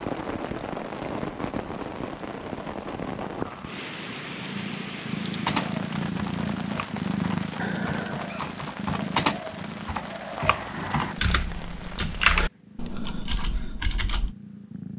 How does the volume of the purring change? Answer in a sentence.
The volume of the purring goes up, then down.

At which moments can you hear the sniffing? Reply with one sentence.
The sniffing can't be heard in this clip.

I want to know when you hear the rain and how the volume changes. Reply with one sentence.
The rain can be heard from 0.0 to 12.4 s, getting quieter.